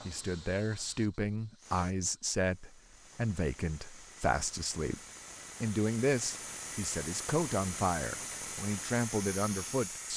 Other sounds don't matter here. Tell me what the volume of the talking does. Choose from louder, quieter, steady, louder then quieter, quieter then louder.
steady.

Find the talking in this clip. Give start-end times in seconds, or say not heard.
0.1-5.0, 5.6-10.1.